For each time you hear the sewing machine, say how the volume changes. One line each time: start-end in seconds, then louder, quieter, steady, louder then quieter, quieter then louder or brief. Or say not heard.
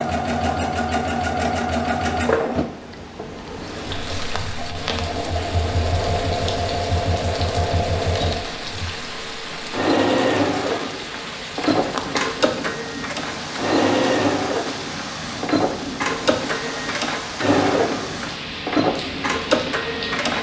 0.0-20.3 steady.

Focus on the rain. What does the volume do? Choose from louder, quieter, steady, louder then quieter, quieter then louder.
steady.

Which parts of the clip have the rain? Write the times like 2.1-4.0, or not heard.
3.5-20.3.